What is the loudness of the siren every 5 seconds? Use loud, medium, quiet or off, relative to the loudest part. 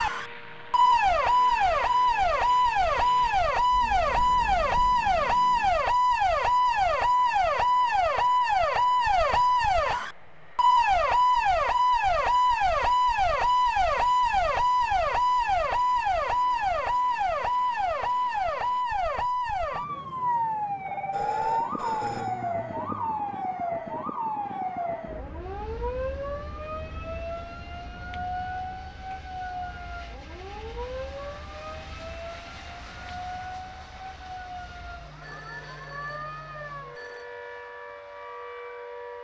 loud, loud, loud, loud, medium, quiet, quiet, quiet.